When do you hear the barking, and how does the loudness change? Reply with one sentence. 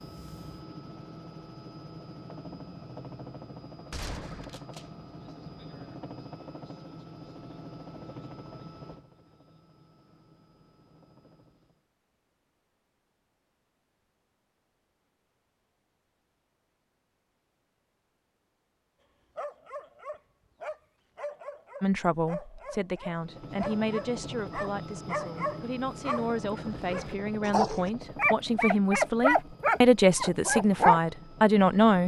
The barking can be heard from 19.4 to 31.0 s, getting louder.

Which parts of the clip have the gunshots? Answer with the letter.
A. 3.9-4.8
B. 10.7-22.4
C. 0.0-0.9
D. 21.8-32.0
A.